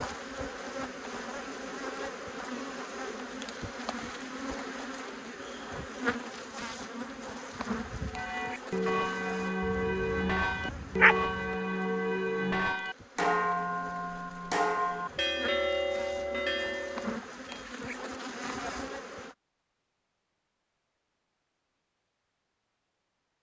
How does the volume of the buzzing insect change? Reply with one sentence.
The loudness of the buzzing insect goes down, then up.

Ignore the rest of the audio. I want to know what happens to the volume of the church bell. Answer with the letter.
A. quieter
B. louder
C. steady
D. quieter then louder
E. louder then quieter
C.